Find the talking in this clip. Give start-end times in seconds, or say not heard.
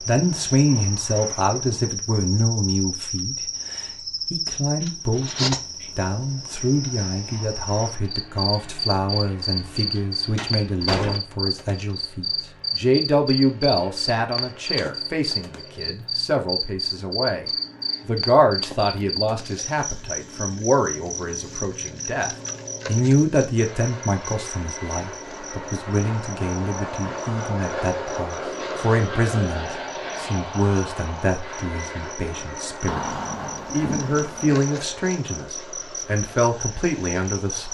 0.0-17.4, 18.1-37.6.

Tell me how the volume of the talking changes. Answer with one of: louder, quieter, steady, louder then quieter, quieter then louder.
steady.